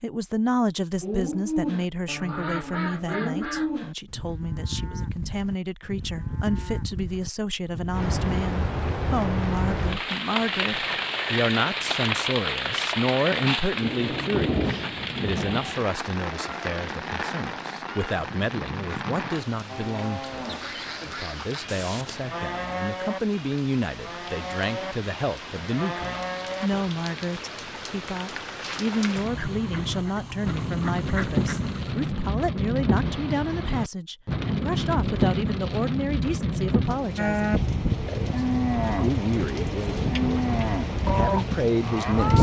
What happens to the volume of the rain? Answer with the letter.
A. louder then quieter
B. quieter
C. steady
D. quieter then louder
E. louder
D.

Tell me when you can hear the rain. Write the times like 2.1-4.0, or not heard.
7.9-42.3.